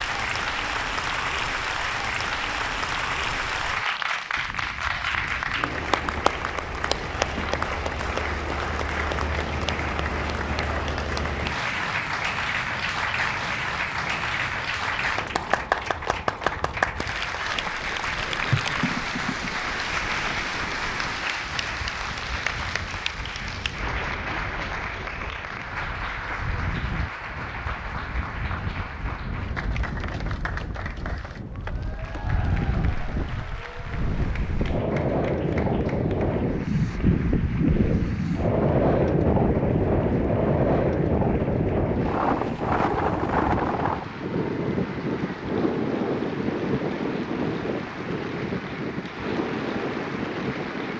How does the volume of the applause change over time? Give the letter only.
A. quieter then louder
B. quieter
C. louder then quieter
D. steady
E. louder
B.